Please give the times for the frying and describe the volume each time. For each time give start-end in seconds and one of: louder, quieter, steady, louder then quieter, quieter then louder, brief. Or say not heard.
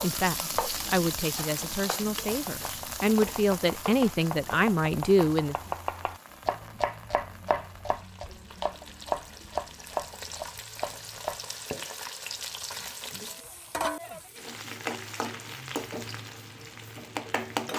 0.0-17.7 quieter then louder.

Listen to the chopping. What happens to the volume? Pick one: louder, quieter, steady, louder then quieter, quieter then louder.
louder.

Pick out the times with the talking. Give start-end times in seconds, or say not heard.
0.0-5.5.